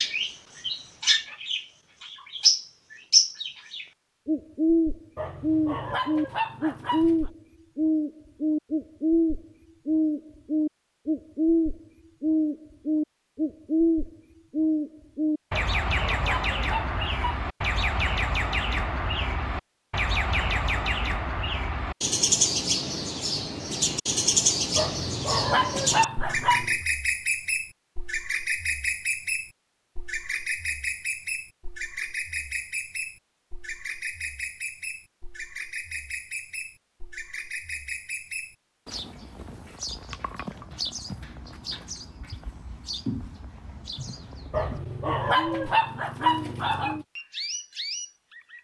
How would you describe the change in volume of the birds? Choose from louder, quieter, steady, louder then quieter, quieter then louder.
quieter.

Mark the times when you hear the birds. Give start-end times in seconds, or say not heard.
0.0-48.5.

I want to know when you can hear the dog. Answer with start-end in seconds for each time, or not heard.
5.2-7.3, 15.5-17.4, 24.8-26.8, 44.5-47.0.